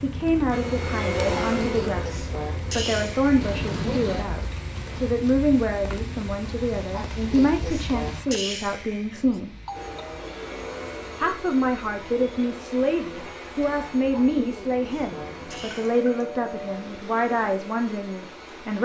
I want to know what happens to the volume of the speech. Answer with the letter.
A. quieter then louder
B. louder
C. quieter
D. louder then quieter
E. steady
E.